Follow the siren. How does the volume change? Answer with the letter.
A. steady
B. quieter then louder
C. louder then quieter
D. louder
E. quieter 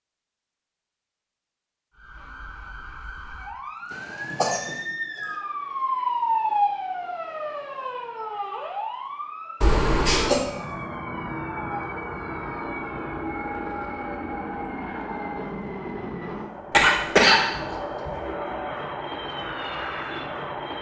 C.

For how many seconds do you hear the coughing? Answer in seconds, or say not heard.
3 s.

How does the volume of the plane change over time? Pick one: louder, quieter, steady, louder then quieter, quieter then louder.
steady.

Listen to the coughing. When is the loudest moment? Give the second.
17 s.